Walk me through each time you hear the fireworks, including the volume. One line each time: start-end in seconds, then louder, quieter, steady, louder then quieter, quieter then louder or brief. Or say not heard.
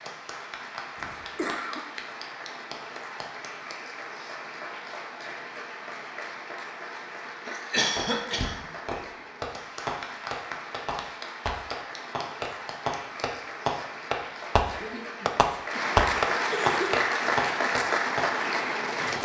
8.0-18.6 louder.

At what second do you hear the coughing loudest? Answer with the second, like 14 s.
8 s.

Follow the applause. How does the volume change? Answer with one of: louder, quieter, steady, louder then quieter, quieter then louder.
louder.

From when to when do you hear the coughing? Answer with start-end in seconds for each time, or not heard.
0.9-1.9, 7.5-8.6, 14.8-17.0.